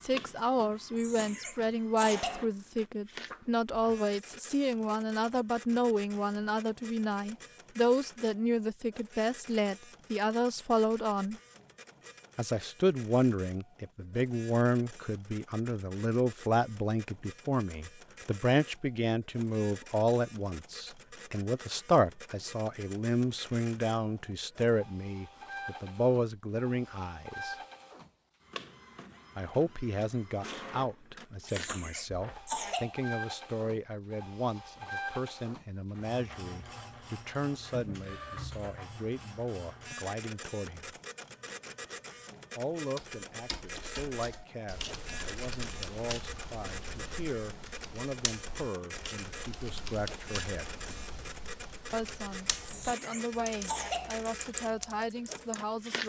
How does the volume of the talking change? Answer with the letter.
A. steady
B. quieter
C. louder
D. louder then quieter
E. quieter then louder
B.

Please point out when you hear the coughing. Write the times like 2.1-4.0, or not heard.
0.9-2.5, 31.4-33.0, 52.6-54.1.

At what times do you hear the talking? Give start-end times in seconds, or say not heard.
0.0-11.3, 12.3-27.6, 29.4-41.0, 42.5-50.8, 51.9-56.0.